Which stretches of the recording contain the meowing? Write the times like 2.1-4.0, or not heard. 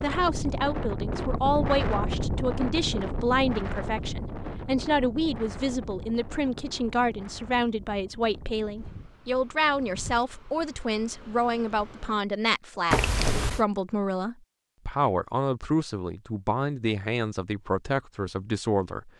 12.9-13.7.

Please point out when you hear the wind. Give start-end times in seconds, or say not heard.
0.0-12.2.